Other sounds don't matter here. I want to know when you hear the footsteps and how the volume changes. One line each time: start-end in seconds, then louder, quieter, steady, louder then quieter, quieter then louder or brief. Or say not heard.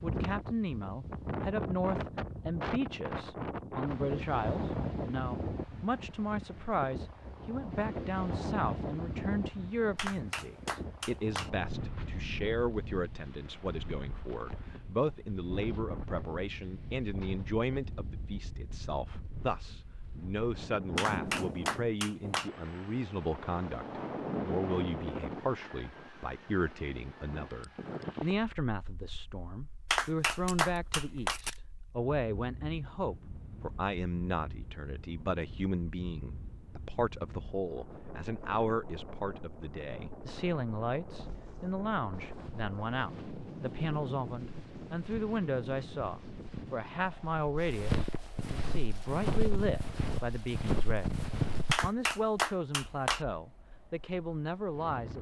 41.0-51.9 louder.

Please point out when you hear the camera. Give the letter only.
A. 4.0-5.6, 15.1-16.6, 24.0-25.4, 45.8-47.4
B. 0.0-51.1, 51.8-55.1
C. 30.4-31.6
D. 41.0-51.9
C.